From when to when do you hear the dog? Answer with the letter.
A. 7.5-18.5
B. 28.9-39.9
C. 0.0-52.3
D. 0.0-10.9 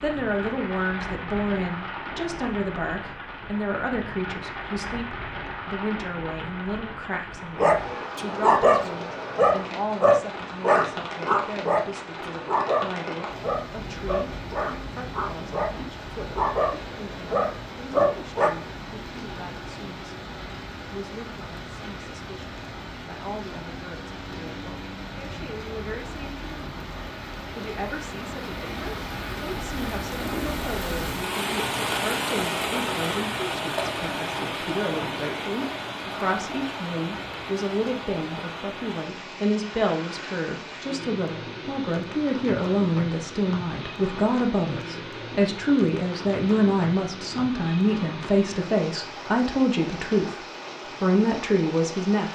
A.